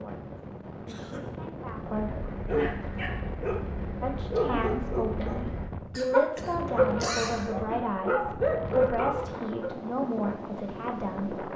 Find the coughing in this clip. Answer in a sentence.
You can hear the coughing from 0.8 to 1.4 s and from 6.0 to 7.5 s.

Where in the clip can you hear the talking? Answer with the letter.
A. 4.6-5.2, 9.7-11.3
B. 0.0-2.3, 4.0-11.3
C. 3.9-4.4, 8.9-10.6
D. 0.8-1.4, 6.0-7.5
B.